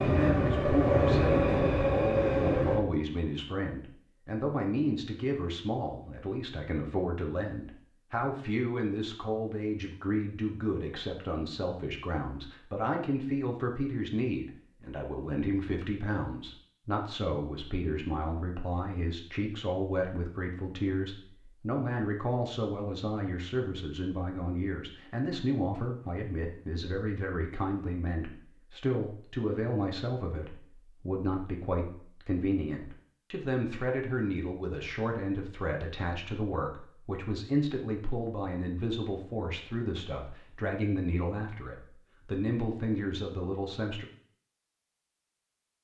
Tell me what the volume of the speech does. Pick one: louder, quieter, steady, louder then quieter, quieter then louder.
steady.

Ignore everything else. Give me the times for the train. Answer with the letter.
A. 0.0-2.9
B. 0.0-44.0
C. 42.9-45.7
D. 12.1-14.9
A.